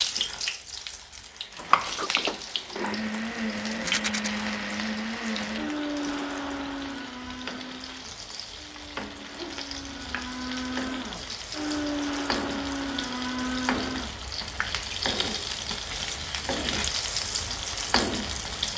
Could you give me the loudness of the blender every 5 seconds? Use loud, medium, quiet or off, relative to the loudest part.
loud, loud, loud, off.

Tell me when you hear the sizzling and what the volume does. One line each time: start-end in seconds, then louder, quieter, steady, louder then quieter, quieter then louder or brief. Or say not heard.
0.0-18.7 quieter then louder.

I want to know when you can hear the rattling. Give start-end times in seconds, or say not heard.
3.7-4.3.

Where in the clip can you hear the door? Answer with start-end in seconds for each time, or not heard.
1.6-3.0.